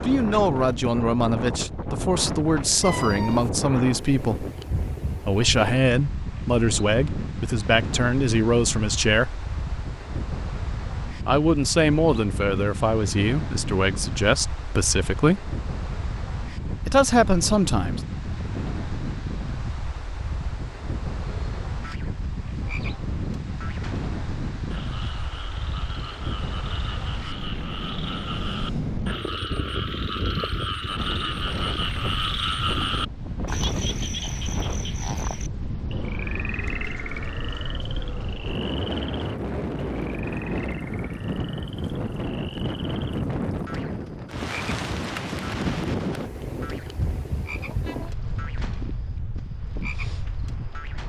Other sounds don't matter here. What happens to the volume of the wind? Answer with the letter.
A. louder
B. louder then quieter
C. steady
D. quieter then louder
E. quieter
C.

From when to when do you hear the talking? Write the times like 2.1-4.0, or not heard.
0.0-4.5, 5.2-9.3, 11.2-15.5, 16.9-18.0.